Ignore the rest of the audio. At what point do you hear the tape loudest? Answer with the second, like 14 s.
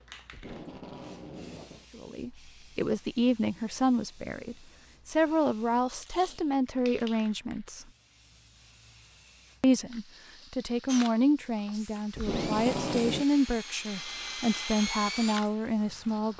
13 s.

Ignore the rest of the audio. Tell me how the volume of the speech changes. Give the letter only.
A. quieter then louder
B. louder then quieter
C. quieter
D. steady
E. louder
D.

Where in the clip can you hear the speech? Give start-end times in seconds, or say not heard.
1.9-7.8, 9.6-16.3.